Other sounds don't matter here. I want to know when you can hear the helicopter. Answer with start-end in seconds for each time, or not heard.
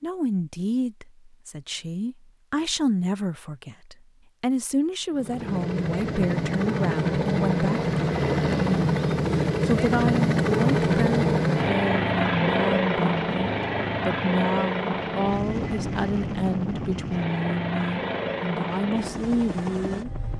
5.1-20.3.